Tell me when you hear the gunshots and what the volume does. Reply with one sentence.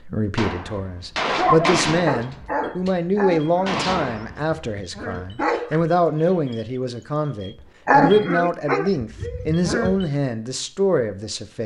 The gunshots can be heard from 0.3 to 4.5 s, getting quieter then louder.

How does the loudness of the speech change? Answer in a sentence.
The loudness of the speech stays about the same.